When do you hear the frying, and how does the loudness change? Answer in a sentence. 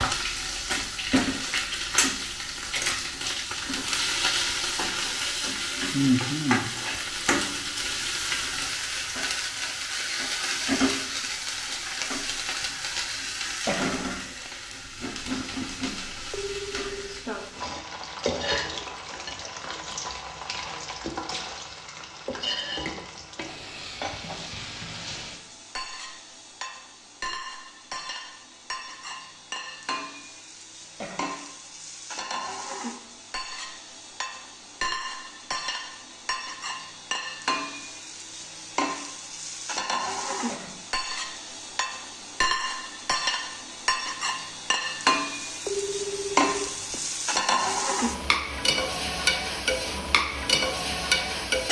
The frying can be heard from 0.0 to 51.6 s, getting quieter then louder.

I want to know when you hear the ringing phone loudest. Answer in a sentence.
The loudest moment of the ringing phone is at 46 seconds.